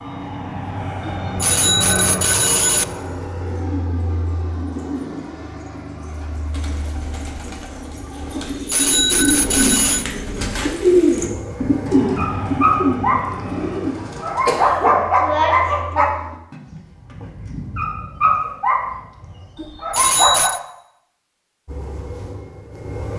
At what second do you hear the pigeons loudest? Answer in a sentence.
The volume of the pigeons peaks at 11 seconds.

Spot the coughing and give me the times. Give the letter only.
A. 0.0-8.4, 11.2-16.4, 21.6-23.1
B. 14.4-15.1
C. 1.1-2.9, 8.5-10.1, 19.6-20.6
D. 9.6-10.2
B.